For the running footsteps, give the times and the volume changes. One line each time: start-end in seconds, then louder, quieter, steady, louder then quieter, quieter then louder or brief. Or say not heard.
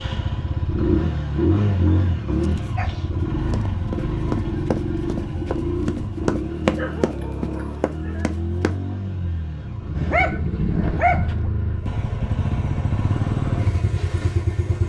3.1-8.8 louder then quieter.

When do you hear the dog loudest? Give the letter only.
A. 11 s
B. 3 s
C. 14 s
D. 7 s
A.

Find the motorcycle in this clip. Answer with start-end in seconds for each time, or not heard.
0.0-14.8.